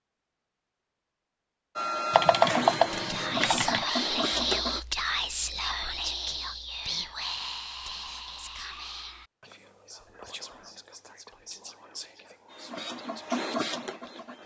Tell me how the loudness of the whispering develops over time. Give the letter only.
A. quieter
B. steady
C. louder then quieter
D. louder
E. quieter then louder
A.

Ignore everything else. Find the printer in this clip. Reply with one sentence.
The printer can be heard from 1.8 to 4.8 s and from 12.4 to 14.4 s.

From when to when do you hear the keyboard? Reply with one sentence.
You can hear the keyboard from 2.1 to 3.9 s.